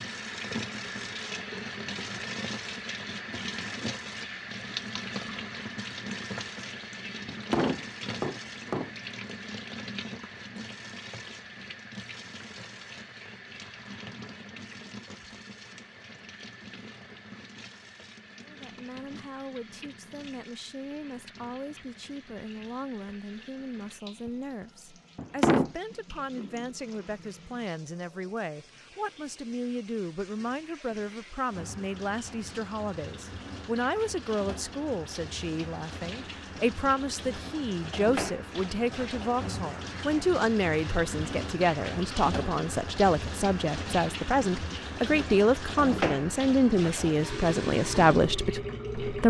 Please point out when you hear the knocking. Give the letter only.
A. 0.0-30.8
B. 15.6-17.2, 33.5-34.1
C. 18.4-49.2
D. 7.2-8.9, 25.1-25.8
D.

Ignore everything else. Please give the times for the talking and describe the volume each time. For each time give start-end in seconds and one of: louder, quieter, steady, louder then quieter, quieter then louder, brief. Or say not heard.
18.4-49.2 louder.